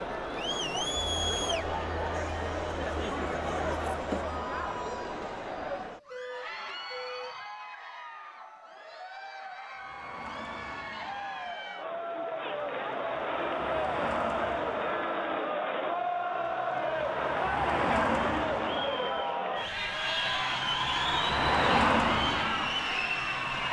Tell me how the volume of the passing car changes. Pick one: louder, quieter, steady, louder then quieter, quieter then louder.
louder.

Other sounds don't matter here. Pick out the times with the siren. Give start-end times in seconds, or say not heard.
not heard.